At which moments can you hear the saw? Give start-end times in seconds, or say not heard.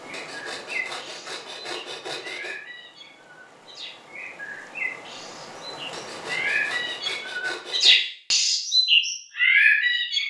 0.1-2.6, 5.9-8.0.